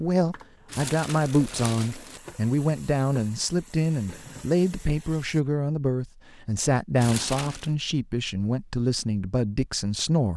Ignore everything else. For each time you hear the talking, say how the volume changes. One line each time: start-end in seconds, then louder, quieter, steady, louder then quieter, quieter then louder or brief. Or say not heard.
0.0-10.3 steady.